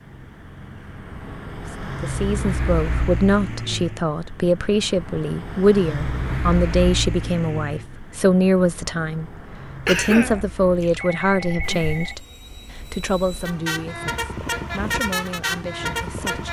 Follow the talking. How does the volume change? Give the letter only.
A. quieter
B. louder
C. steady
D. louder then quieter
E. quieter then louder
A.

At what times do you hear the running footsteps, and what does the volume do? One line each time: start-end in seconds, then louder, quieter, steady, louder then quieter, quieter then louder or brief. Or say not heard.
not heard.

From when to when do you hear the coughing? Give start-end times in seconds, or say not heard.
9.8-11.0.